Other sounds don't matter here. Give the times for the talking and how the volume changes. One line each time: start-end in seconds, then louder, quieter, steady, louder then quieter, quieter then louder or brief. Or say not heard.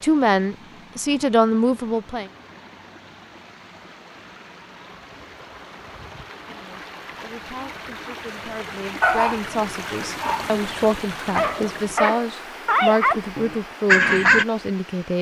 0.0-2.3 brief
6.3-15.1 louder.